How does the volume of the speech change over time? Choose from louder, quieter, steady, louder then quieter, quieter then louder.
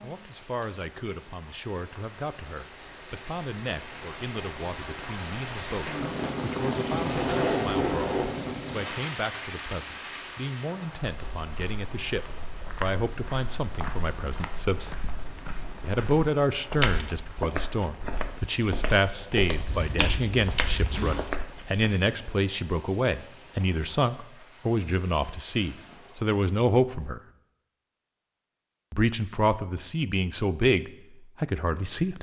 louder.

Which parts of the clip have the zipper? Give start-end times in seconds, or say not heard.
7.0-8.3, 19.6-21.2.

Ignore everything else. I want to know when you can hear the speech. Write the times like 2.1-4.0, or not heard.
0.0-14.9, 15.8-27.2, 28.9-32.1.